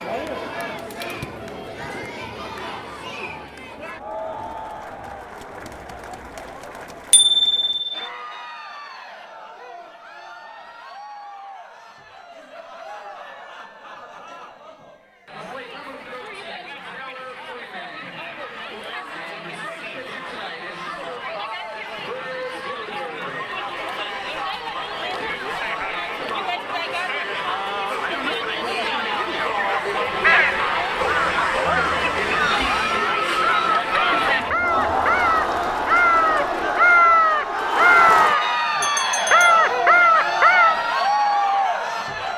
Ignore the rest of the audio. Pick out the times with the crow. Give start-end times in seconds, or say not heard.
29.6-40.8.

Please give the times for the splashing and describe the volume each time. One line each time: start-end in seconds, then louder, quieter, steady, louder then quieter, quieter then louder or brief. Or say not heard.
not heard.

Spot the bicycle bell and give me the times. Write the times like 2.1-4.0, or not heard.
7.1-7.9, 38.8-39.7.